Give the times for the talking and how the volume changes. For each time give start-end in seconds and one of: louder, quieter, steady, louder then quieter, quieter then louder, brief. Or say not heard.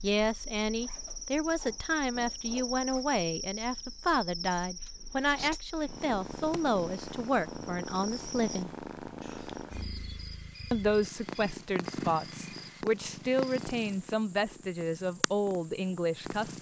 0.0-8.7 steady
10.7-16.5 steady.